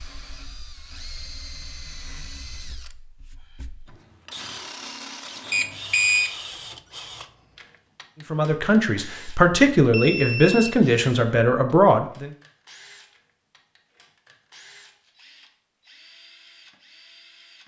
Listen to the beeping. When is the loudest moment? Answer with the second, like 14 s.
6 s.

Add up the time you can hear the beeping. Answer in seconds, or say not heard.
2 s.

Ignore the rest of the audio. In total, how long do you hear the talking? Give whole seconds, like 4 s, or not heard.
4 s.